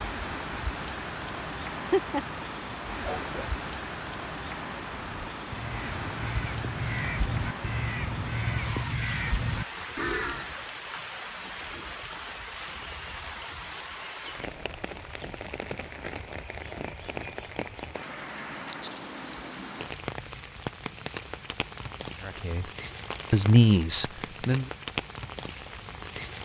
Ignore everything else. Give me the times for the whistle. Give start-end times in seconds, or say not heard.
not heard.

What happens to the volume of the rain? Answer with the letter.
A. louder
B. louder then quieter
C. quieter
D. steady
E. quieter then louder
D.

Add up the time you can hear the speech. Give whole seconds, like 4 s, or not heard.
2 s.